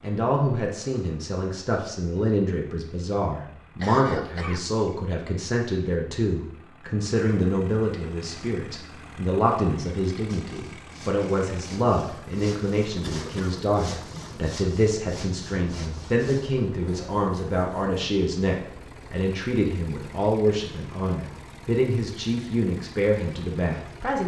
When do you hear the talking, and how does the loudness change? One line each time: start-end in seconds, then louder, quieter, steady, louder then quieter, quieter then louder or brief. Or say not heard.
0.0-24.2 steady.